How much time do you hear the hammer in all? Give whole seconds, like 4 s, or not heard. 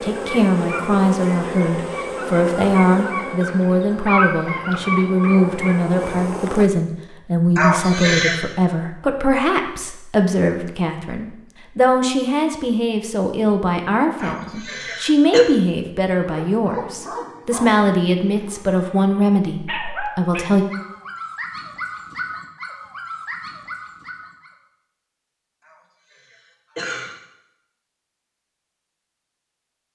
not heard.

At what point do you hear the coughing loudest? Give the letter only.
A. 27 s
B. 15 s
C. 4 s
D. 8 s
D.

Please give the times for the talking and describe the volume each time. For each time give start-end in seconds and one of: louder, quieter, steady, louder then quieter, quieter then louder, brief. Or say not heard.
0.0-20.6 steady.